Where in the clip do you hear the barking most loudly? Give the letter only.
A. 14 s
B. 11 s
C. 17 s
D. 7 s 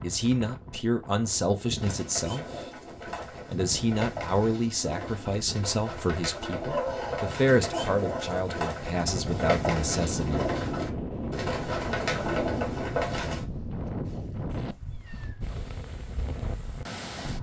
D.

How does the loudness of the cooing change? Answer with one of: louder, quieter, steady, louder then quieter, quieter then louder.
louder.